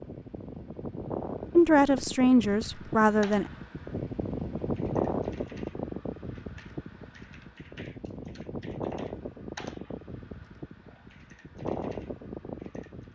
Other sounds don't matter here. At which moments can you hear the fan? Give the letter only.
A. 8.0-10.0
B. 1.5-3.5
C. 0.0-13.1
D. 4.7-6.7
C.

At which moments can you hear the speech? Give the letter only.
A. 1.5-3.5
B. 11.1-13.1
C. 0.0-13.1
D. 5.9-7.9
A.